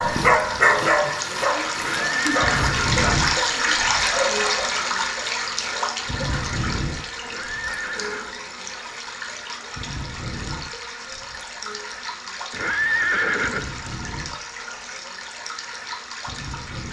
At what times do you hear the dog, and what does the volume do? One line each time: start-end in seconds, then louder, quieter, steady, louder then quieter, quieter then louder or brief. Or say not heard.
0.0-4.5 quieter.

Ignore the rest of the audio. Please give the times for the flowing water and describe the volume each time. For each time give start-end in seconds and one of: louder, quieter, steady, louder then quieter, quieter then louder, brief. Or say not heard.
0.0-16.8 quieter.